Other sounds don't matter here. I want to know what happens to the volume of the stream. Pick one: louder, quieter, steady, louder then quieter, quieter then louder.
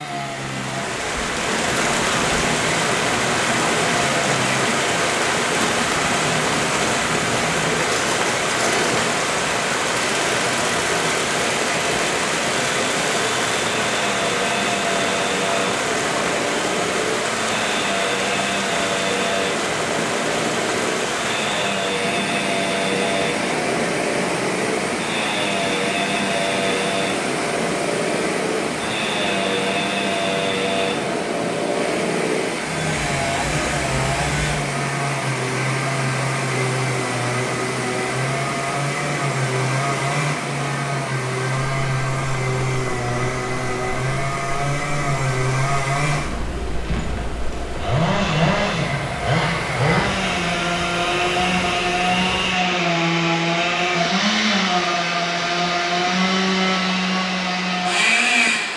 quieter.